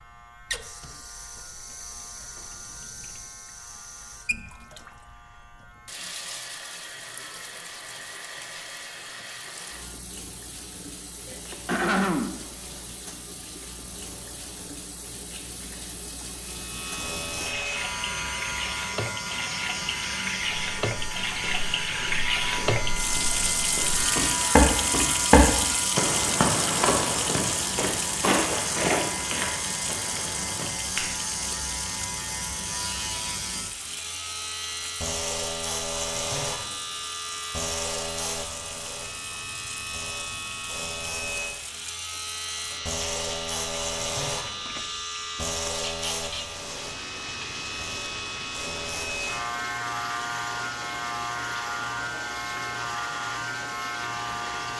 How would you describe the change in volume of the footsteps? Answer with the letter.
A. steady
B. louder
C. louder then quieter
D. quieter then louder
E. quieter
C.